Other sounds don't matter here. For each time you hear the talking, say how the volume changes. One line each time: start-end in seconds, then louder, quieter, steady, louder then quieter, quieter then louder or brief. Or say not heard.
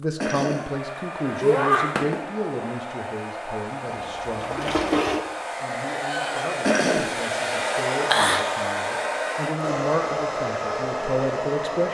0.0-11.8 quieter then louder.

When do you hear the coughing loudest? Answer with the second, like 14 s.
7 s.